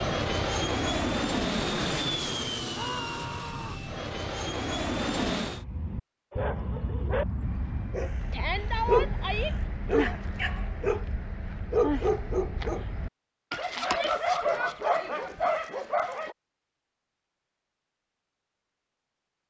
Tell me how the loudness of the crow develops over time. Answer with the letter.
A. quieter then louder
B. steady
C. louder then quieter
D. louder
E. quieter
E.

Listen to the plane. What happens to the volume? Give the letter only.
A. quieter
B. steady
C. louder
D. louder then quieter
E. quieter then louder
E.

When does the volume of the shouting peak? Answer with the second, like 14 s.
9 s.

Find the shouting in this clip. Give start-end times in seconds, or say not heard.
2.7-3.8, 8.3-9.6, 13.8-15.2.